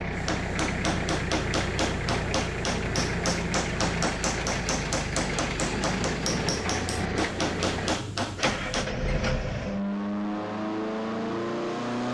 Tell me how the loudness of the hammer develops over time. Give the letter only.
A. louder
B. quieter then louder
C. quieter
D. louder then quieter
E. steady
E.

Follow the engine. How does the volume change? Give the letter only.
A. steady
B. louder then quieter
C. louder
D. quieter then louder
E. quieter
A.